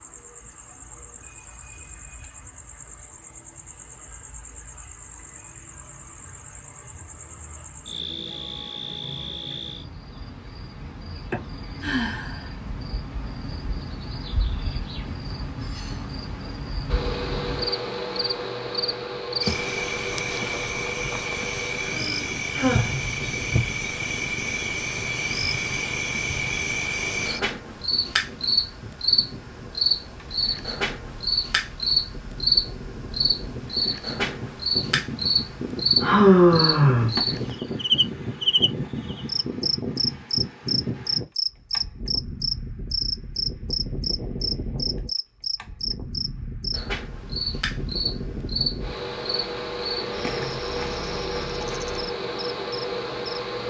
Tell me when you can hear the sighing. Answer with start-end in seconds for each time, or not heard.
11.3-12.4, 21.9-23.0, 36.0-37.2.